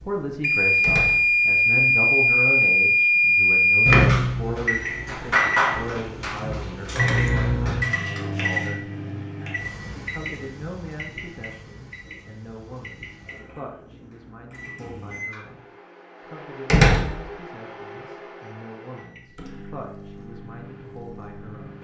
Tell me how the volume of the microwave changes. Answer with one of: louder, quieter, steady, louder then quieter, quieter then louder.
quieter.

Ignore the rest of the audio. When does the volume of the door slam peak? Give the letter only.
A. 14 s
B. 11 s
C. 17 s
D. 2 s
C.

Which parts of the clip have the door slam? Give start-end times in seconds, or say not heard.
0.8-1.4, 16.6-17.2.